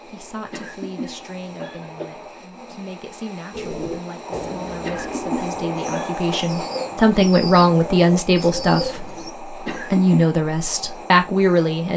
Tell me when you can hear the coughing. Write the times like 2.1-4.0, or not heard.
0.5-2.1, 4.8-6.5, 9.7-10.2.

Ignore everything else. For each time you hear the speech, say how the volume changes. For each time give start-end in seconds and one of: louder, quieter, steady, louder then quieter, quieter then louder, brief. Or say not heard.
0.1-11.9 louder.